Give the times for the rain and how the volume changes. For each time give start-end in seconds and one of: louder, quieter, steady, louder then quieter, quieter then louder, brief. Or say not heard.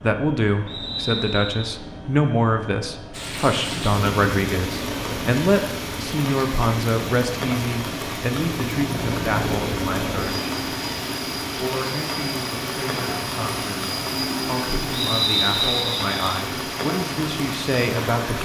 3.1-18.4 steady.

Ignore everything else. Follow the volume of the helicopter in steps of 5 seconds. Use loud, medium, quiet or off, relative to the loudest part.
medium, loud, loud, loud.